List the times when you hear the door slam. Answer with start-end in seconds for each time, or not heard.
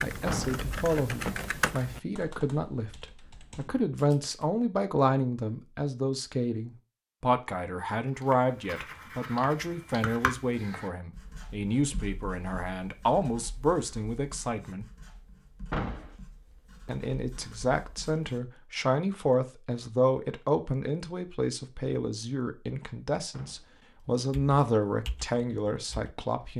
0.2-0.7, 15.7-16.1, 23.3-23.8.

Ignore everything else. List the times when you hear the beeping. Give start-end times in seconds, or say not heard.
not heard.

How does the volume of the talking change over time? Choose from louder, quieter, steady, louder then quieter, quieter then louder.
steady.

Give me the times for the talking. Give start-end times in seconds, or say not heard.
0.0-14.8, 16.9-26.5.